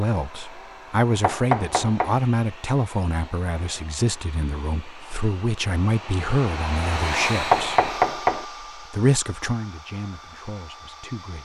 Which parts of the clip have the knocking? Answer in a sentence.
You can hear the knocking from 1.2 to 2.2 s and from 7.5 to 8.4 s.